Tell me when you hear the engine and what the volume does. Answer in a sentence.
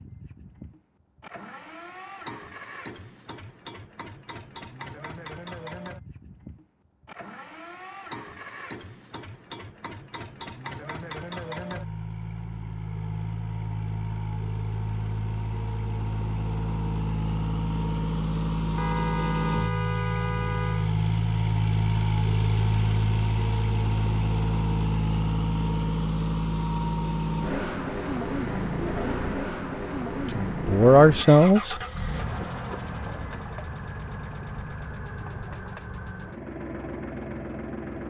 You can hear the engine from 0.0 to 38.0 s, getting louder then quieter.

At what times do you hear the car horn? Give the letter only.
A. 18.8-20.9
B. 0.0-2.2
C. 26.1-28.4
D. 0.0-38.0
A.